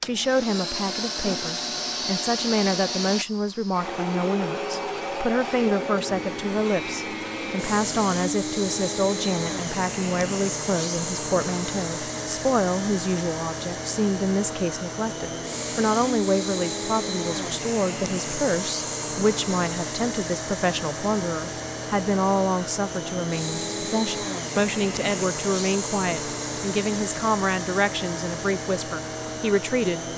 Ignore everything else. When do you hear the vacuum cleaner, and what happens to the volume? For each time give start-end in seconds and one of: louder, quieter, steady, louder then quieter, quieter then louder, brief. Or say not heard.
0.0-30.1 steady.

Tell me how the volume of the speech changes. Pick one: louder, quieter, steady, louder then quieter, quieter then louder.
steady.